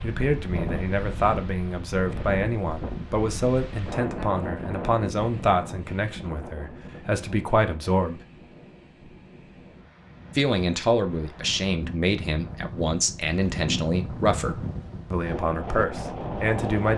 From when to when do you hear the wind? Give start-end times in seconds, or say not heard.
0.0-16.9.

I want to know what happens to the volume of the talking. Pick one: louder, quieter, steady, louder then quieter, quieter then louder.
steady.